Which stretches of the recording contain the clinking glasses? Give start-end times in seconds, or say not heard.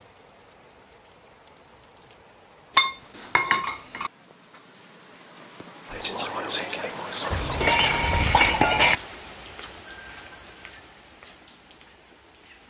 2.8-4.1, 7.3-8.9.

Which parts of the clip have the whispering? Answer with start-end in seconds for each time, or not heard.
5.9-8.2.